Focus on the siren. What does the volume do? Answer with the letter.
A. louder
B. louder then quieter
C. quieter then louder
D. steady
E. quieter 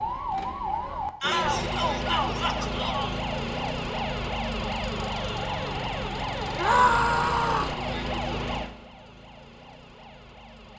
E.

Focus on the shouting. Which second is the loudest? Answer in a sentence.
The volume of the shouting peaks at 7 seconds.